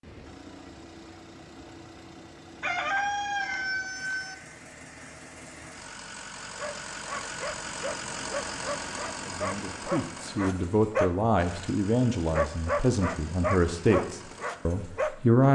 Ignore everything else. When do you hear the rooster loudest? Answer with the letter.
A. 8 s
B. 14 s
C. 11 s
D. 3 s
D.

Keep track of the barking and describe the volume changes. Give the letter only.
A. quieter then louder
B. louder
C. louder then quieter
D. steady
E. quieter
B.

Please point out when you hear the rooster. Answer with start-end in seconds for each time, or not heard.
2.6-4.3.